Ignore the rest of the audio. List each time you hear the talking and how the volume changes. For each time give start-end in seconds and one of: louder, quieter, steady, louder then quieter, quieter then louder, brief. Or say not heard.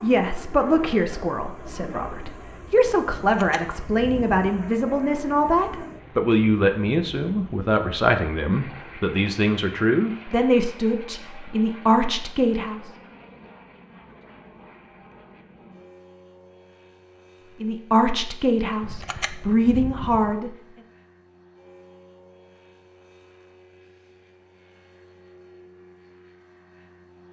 0.0-12.9 steady
17.6-20.6 brief.